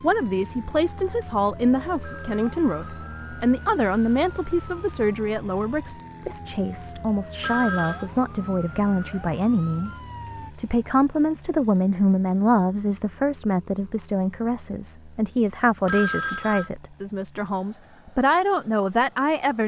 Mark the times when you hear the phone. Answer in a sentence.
The phone can be heard from 2.0 to 3.4 s, from 7.4 to 8.1 s and from 15.8 to 16.7 s.